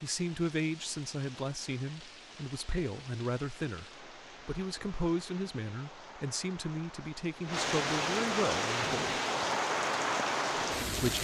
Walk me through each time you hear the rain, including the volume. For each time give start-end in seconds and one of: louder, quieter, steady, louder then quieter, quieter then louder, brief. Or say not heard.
0.0-11.1 louder.